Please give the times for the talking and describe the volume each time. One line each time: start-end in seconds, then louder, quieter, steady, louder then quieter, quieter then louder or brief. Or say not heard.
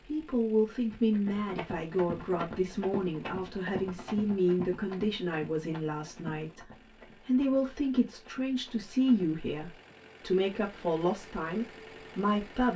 0.1-12.7 steady.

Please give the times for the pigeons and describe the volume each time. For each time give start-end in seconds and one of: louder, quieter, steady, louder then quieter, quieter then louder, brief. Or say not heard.
not heard.